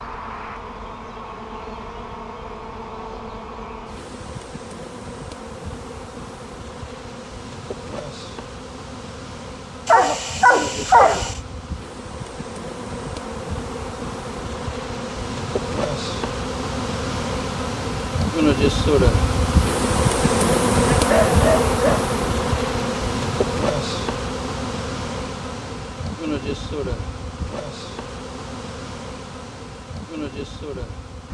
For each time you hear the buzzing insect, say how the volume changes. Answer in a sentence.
You can hear the buzzing insect from 0.0 to 31.2 s, getting louder then quieter.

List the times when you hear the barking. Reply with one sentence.
The barking can be heard from 9.8 to 11.3 s and from 20.9 to 22.1 s.